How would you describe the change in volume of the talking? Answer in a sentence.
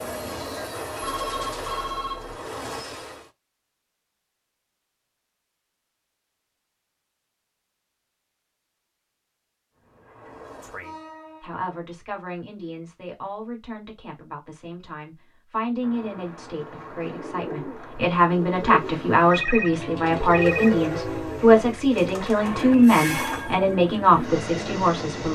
The volume of the talking goes up.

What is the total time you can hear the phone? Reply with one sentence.
The phone can be heard for 3 seconds in total.